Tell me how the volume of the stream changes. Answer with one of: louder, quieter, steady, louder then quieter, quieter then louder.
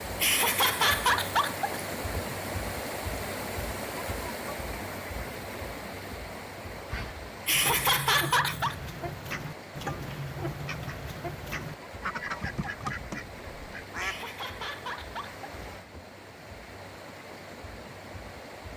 quieter.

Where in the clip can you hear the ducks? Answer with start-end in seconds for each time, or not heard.
6.8-14.3.